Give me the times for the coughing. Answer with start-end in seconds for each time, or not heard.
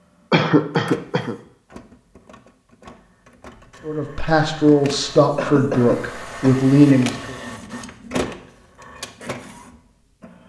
0.3-1.4, 5.3-6.6.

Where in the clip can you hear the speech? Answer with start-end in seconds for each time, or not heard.
3.9-7.3.